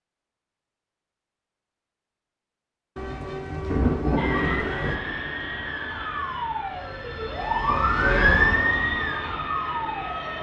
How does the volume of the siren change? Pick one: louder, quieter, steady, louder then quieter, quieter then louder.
louder then quieter.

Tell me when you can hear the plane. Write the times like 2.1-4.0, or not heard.
4.2-10.3.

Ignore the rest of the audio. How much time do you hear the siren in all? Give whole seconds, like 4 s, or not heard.
6 s.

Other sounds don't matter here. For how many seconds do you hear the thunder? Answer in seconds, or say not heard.
2 s.